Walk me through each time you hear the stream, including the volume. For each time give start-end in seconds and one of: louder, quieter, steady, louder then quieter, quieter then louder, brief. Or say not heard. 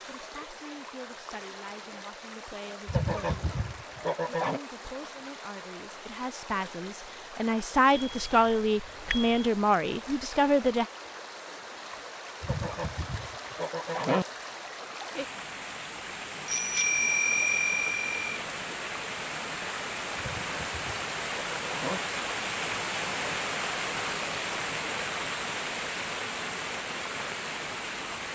0.0-28.3 louder.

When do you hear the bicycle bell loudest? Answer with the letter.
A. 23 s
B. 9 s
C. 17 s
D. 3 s
C.